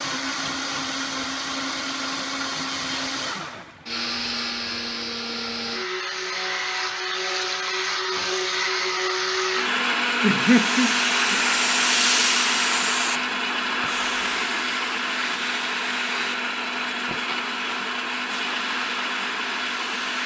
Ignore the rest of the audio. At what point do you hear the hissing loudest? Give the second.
12 s.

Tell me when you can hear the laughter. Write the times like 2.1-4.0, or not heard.
10.2-11.4.